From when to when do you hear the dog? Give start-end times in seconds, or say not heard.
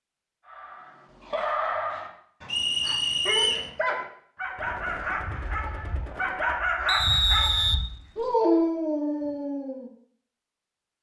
0.5-9.9.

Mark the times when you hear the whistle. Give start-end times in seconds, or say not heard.
2.5-3.7, 6.8-8.3.